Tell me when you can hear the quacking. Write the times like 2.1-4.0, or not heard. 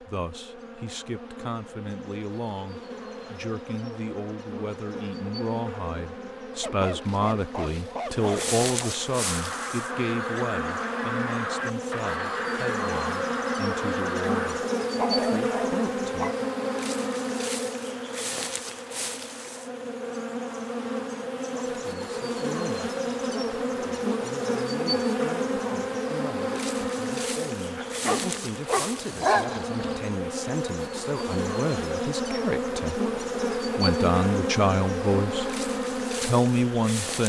9.1-14.8.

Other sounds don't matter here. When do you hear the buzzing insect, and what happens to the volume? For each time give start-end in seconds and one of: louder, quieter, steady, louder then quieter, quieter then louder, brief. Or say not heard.
0.0-37.2 louder.